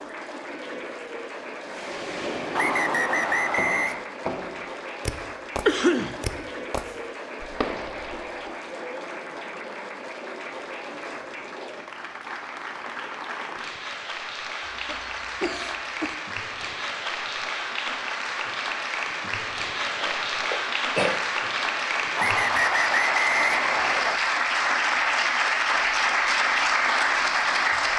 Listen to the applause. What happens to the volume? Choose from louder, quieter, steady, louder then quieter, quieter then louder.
louder.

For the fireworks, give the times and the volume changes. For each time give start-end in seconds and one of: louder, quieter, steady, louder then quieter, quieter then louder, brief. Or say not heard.
1.7-8.5 steady.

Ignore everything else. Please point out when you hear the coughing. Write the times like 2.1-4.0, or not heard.
5.7-6.2, 14.7-16.1, 20.0-21.2.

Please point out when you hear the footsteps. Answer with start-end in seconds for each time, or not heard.
not heard.